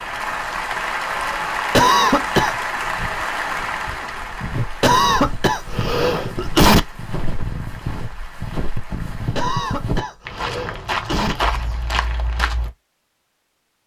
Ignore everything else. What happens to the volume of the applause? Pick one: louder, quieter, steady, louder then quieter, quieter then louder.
quieter.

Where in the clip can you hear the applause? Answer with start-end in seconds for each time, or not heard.
0.0-9.3.